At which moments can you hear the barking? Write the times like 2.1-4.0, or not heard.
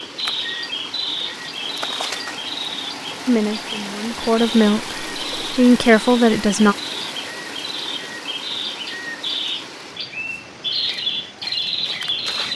not heard.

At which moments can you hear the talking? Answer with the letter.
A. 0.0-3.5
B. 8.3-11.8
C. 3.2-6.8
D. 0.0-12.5
C.